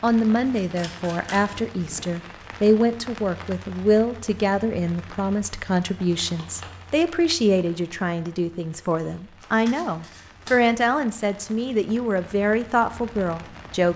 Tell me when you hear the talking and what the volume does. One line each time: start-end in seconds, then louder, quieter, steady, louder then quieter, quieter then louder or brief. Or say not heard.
0.0-13.9 steady.